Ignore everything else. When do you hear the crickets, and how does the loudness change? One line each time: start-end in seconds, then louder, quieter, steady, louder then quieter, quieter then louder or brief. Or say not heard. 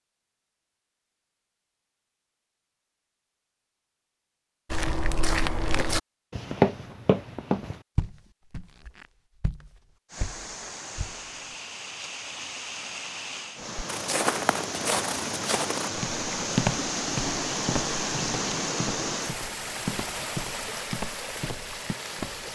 not heard.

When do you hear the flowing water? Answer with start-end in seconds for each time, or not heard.
10.1-22.4.